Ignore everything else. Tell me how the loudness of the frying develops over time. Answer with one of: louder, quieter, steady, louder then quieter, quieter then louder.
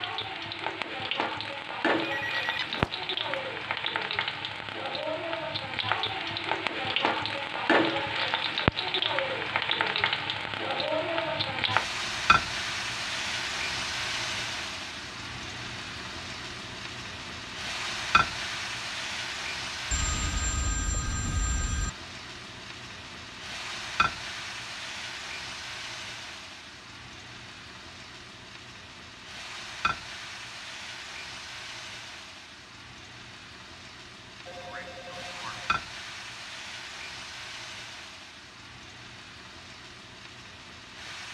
quieter.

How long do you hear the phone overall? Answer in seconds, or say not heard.
5 s.